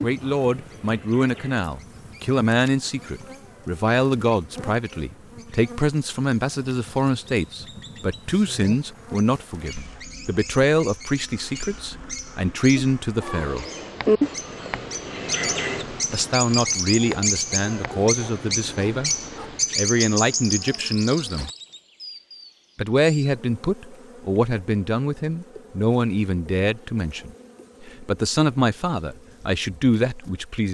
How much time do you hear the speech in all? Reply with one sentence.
The speech can be heard for 26 seconds in total.